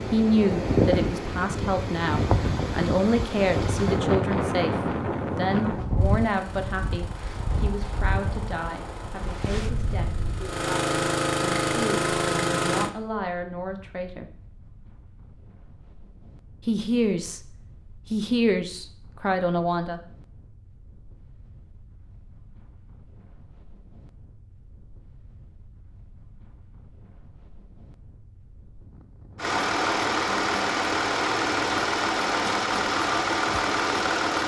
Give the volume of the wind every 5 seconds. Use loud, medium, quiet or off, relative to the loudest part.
loud, medium, quiet, quiet, quiet, quiet, quiet.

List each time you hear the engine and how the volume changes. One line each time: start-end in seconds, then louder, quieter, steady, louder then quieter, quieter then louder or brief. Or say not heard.
6.0-12.9 louder
29.4-34.4 steady.